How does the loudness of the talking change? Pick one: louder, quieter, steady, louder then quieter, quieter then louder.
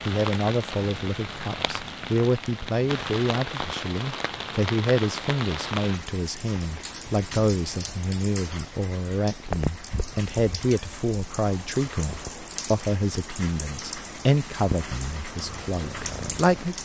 steady.